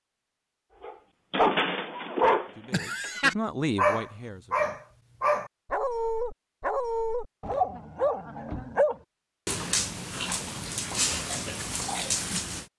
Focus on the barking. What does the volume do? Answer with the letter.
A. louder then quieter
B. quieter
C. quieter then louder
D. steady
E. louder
B.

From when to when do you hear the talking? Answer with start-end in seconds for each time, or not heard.
2.5-4.8.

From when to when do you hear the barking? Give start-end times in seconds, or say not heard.
0.8-12.7.